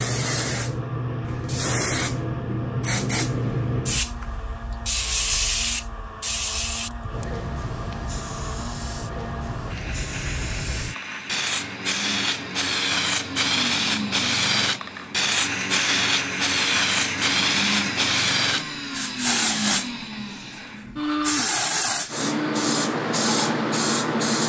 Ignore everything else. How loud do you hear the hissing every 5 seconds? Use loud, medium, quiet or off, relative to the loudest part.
loud, medium, loud, loud, loud.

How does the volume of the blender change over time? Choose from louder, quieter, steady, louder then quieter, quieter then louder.
louder.